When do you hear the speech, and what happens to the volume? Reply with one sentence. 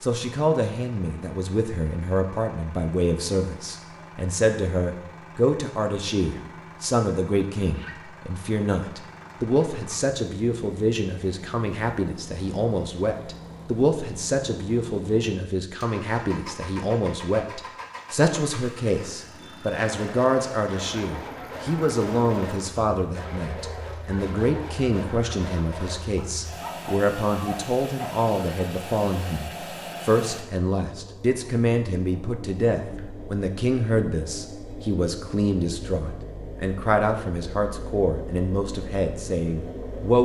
You can hear the speech from 0.0 to 40.2 s, at a steady volume.